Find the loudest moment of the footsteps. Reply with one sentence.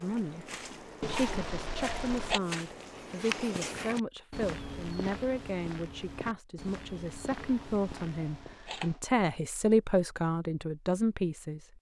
The volume of the footsteps peaks at 3 seconds.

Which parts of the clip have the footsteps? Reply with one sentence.
You can hear the footsteps from 0.0 to 8.6 s.